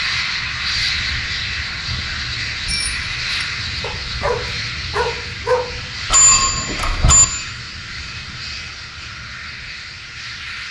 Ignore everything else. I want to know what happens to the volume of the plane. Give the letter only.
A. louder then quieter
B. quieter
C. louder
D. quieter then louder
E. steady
B.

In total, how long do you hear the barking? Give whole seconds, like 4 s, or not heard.
2 s.